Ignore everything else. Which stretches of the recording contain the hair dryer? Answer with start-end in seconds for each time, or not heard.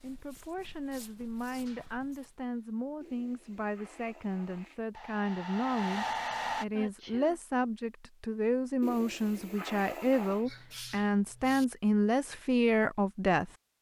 4.9-6.7.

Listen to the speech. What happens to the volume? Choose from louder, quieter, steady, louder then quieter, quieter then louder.
louder.